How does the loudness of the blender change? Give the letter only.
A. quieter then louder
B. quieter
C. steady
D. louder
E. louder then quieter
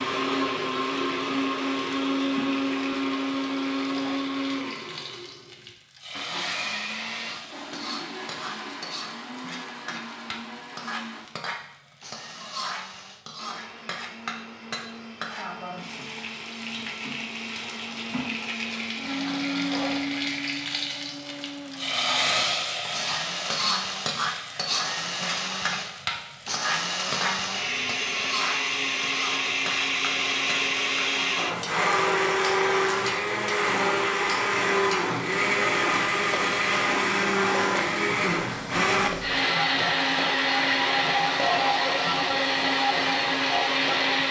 A.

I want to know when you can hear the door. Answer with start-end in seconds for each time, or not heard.
not heard.